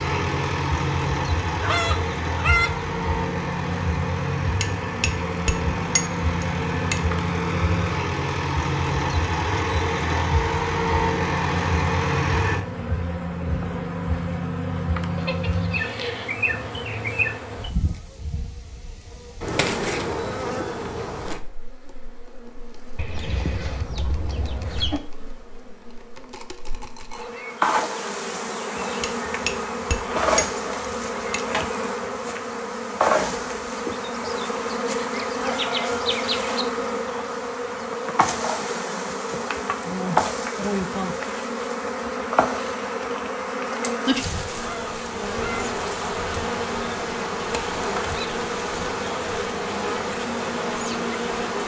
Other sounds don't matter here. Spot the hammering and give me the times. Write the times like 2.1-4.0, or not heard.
4.5-7.0, 29.0-31.4.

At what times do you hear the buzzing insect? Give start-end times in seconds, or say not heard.
0.0-51.6.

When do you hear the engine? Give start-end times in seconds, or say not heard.
0.0-12.7.